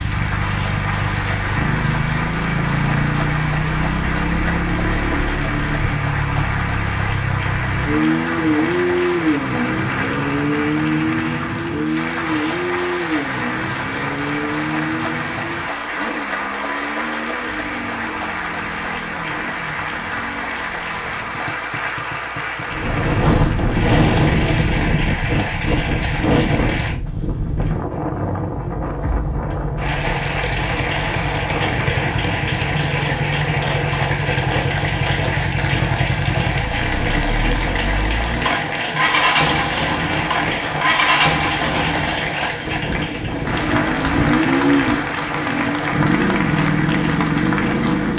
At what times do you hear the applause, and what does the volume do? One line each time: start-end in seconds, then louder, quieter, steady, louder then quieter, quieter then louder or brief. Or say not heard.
0.0-27.0 steady
29.8-48.1 steady.